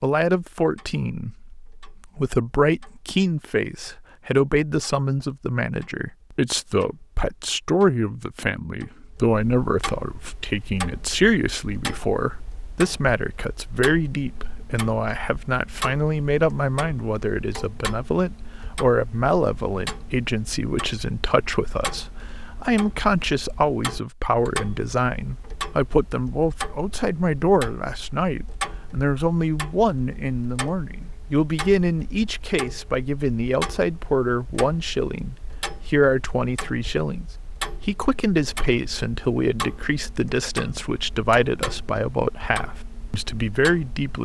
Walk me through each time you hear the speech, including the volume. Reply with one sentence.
You can hear the speech from 0.0 to 44.2 s, at a steady volume.